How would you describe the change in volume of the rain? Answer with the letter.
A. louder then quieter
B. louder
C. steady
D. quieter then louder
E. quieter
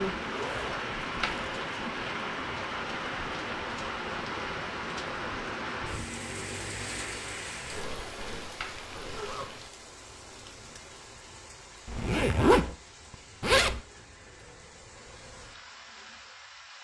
E.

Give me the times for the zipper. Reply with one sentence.
You can hear the zipper from 0.3 to 1.6 s, from 7.7 to 9.4 s and from 11.8 to 13.8 s.